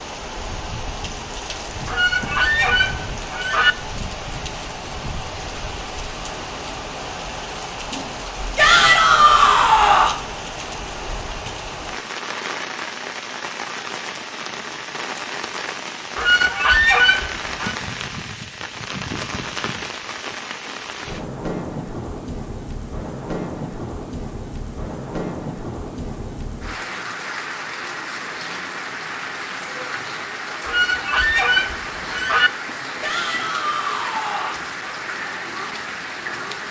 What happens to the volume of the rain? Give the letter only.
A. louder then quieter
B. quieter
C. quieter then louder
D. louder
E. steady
E.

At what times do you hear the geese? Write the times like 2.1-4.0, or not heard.
1.9-3.8, 16.1-17.8, 30.6-32.5.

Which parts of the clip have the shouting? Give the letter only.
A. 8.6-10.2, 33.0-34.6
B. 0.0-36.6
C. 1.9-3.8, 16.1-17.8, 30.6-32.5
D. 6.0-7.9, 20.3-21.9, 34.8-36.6
A.